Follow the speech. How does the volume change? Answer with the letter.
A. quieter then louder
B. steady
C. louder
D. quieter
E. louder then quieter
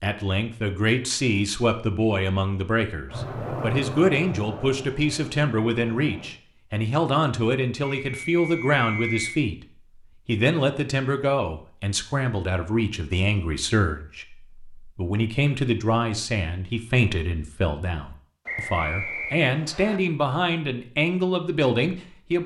B.